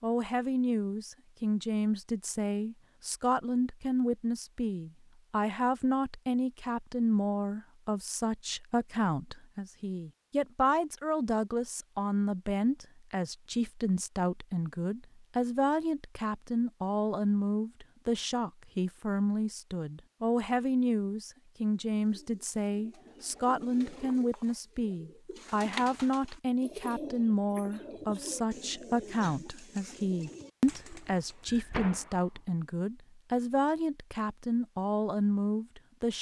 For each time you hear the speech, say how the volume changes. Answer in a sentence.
You can hear the speech from 0.0 to 36.1 s, at a steady volume.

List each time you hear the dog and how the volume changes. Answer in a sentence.
The dog can't be heard in this clip.